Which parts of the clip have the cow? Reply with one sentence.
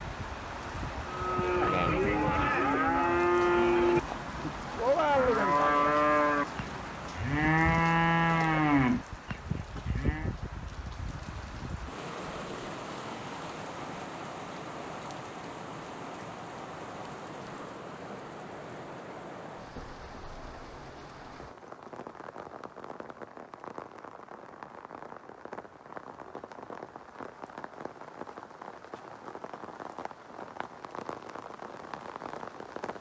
The cow can be heard from 1.1 to 10.3 s.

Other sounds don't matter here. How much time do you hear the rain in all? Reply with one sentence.
You can hear the rain for 33 seconds altogether.